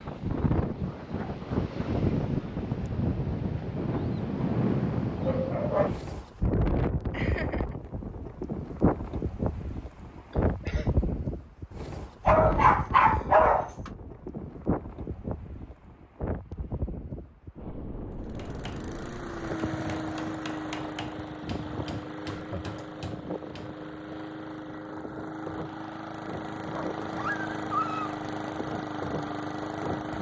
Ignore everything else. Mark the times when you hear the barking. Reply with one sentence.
The barking can be heard from 5.2 to 5.9 s, from 12.2 to 13.9 s and from 26.7 to 28.1 s.